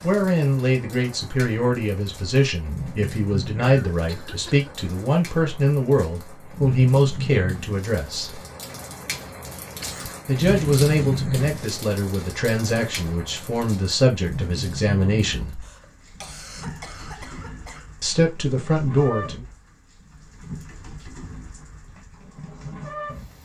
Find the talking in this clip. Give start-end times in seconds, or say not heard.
0.0-8.4, 10.2-15.6, 18.0-19.4.